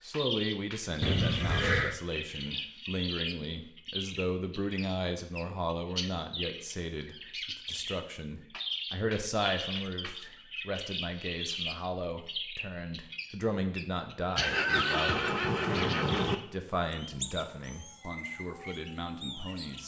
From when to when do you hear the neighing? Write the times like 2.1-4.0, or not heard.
1.0-1.9, 14.3-16.4.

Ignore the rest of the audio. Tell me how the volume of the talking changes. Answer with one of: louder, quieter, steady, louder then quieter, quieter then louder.
steady.